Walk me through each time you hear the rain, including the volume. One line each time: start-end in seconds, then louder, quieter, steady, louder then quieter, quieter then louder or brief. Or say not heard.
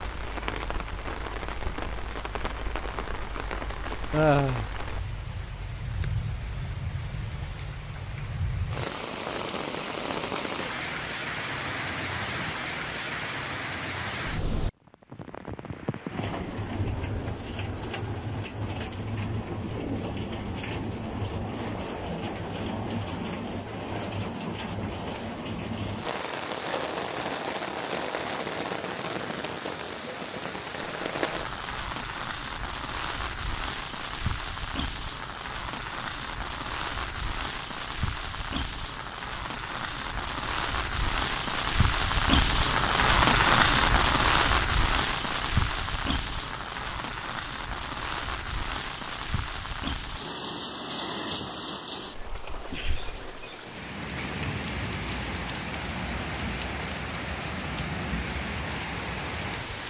0.0-59.8 louder then quieter.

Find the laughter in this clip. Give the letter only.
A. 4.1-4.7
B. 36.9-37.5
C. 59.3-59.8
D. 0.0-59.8
A.